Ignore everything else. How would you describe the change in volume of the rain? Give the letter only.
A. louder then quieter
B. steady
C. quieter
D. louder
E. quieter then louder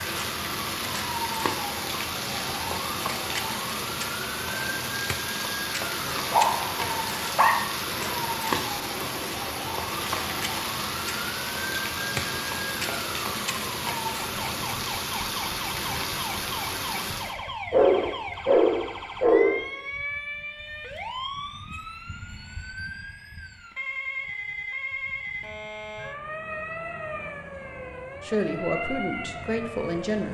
B.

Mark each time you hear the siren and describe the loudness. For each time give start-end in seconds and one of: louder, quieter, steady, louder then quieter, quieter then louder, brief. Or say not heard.
0.0-30.2 steady.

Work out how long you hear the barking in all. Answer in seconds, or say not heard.
4 s.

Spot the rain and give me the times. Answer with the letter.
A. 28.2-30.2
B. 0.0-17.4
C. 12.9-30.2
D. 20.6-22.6
B.